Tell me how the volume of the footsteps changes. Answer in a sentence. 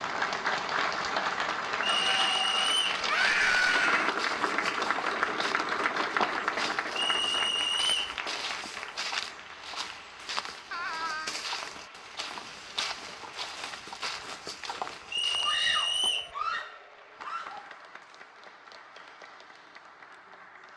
The loudness of the footsteps stays about the same.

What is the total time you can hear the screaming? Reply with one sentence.
You can hear the screaming for 4 seconds altogether.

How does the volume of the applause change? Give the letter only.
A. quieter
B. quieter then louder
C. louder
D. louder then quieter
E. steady
A.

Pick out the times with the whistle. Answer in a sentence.
The whistle can be heard from 1.8 to 3.0 s, from 7.0 to 8.2 s and from 15.1 to 16.3 s.